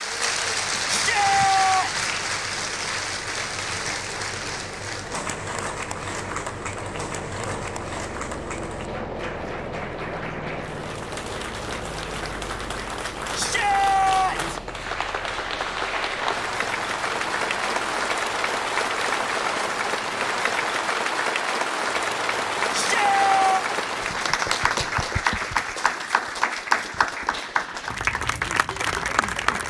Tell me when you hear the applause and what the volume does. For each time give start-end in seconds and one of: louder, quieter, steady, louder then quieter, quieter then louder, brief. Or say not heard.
0.0-29.6 quieter then louder.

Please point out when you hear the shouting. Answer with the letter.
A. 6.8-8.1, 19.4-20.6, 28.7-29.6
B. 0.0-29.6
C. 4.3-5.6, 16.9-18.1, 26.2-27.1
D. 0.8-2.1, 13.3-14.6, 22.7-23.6
D.